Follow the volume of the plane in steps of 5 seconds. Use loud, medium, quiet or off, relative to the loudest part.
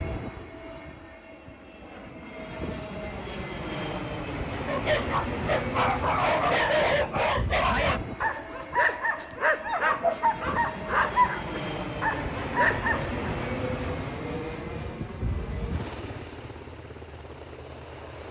loud, loud, loud, medium.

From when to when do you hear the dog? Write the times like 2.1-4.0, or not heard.
4.7-13.2.